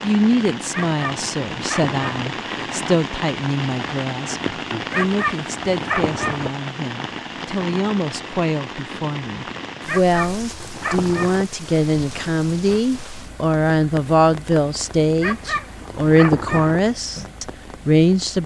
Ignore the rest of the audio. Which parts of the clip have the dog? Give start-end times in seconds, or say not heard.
0.7-2.3, 4.9-6.5, 9.8-11.4, 15.2-16.8.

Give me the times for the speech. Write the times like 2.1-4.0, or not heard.
0.0-18.4.